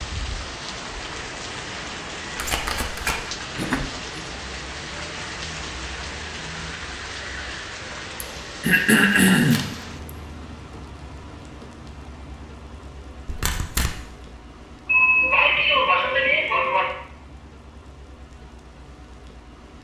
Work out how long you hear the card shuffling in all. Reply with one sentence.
The card shuffling can be heard for 2 seconds in total.